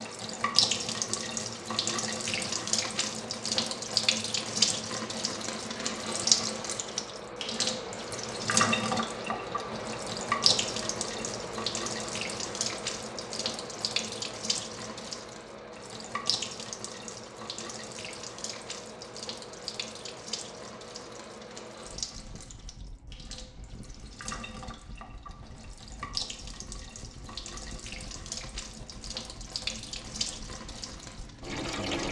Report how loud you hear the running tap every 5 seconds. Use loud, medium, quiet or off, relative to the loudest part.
loud, loud, loud, medium, quiet, medium, medium.